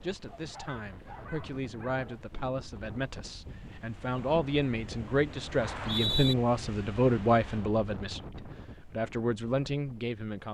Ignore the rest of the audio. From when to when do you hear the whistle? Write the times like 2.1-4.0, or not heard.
5.6-6.3.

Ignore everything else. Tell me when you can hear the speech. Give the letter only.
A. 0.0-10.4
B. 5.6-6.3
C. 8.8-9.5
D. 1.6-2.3
A.